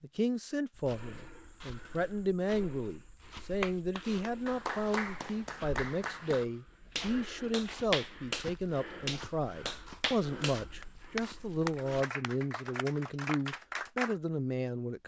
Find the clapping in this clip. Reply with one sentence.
The clapping can be heard from 3.6 to 14.2 s.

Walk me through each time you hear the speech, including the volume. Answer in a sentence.
You can hear the speech from 0.0 to 15.0 s, at a steady volume.